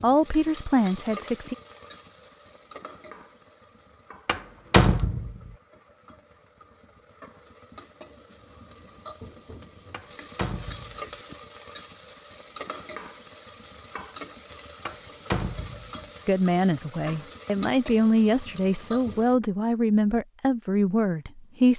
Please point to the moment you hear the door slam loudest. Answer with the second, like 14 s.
5 s.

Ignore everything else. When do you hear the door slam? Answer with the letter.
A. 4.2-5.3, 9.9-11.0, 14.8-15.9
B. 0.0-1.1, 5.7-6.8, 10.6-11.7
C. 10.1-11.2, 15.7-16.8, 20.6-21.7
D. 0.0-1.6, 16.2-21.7
A.